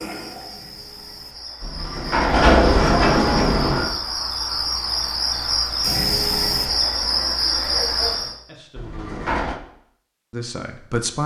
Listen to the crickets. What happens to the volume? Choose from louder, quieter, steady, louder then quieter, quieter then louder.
louder.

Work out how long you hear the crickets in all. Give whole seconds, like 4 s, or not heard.
8 s.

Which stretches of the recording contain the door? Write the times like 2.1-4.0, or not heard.
1.6-4.0, 8.8-9.6.